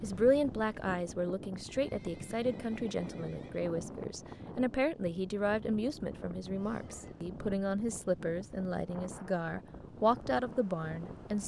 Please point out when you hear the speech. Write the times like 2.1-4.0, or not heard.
0.0-11.4.